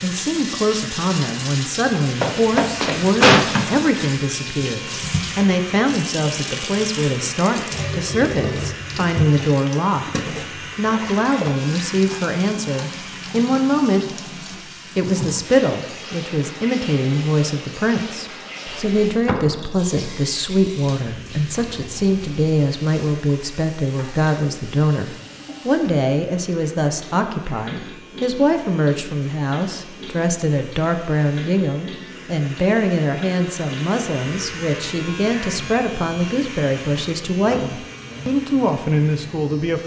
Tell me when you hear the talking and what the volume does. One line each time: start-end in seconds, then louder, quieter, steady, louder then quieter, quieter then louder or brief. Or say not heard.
0.0-14.2 steady
14.9-39.8 steady.